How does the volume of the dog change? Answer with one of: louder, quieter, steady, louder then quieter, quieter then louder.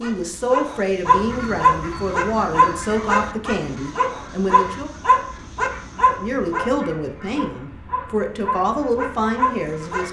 quieter.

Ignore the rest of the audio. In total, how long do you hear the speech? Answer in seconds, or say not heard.
9 s.